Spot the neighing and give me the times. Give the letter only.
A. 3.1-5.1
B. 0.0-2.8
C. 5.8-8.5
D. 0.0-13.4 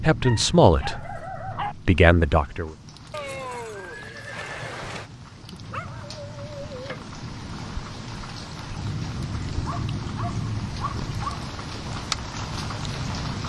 A.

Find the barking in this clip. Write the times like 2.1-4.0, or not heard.
0.2-1.8, 5.5-7.1, 9.7-11.5.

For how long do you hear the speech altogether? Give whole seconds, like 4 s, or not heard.
3 s.